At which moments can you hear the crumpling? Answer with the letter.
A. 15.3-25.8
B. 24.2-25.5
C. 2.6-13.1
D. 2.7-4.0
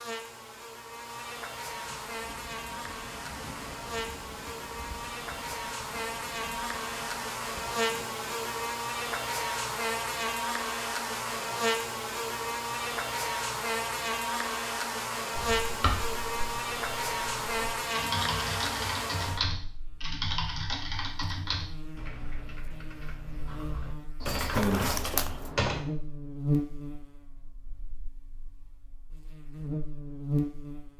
B.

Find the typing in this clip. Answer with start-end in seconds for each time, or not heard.
15.3-25.8.